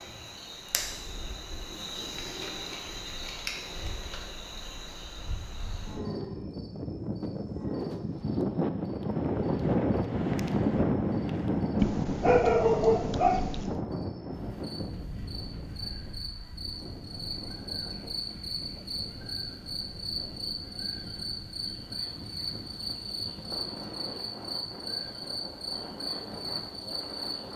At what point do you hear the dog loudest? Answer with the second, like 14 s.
12 s.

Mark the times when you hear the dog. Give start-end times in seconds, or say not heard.
11.8-13.8.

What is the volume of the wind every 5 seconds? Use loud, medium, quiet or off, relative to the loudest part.
quiet, loud, loud, quiet, quiet, quiet.